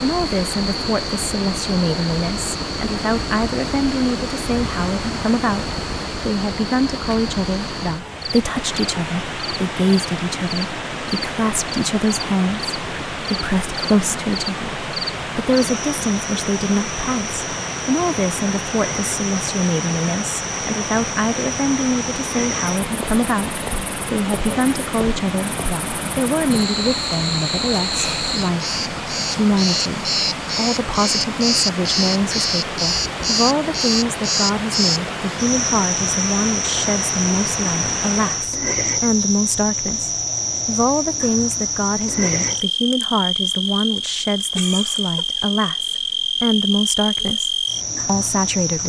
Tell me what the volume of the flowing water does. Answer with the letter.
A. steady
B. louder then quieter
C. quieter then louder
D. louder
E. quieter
A.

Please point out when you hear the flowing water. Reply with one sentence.
You can hear the flowing water from 0.0 to 38.5 s.